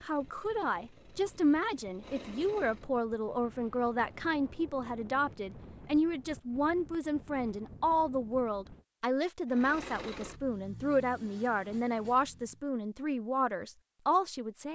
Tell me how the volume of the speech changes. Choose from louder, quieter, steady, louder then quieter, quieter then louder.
steady.